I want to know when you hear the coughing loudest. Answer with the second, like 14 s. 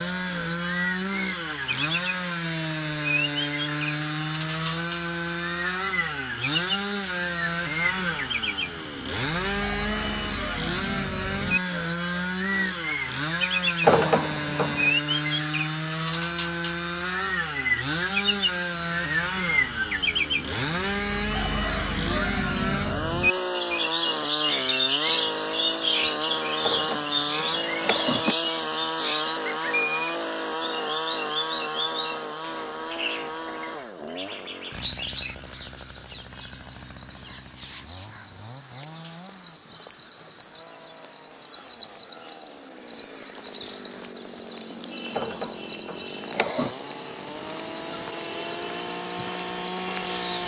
14 s.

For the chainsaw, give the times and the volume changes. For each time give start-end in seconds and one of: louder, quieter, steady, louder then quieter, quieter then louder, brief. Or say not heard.
0.0-50.4 quieter.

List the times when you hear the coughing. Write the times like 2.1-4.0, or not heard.
13.8-14.9, 26.6-28.4, 45.1-46.8.